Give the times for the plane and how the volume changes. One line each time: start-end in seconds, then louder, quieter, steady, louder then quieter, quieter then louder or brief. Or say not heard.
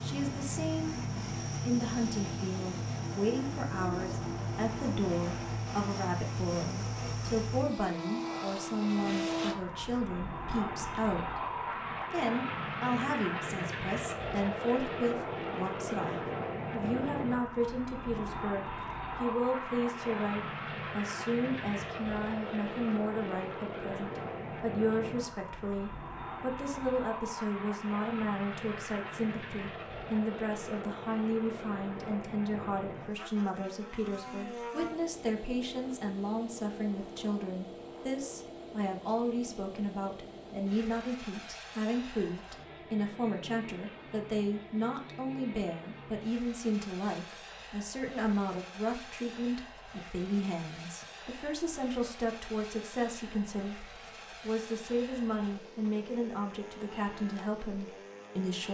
0.0-58.6 quieter.